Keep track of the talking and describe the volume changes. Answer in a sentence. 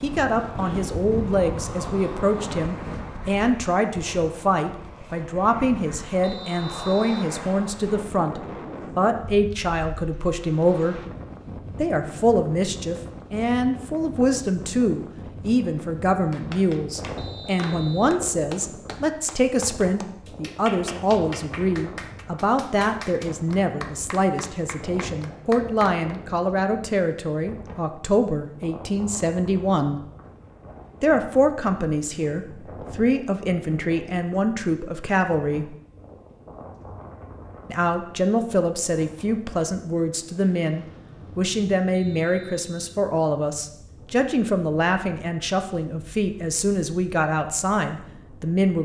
The volume of the talking stays about the same.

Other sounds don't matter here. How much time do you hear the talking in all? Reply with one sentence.
You can hear the talking for 45 seconds altogether.